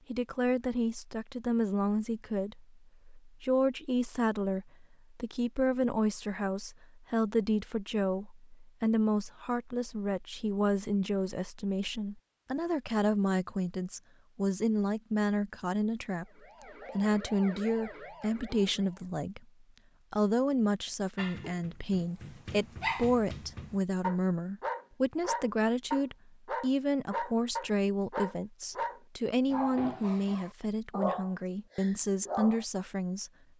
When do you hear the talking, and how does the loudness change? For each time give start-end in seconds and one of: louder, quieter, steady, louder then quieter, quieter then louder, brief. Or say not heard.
0.1-16.2 steady
16.9-19.4 brief
20.1-33.3 steady.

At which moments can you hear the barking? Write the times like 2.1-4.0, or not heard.
21.1-32.6.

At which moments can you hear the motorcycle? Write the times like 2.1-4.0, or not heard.
not heard.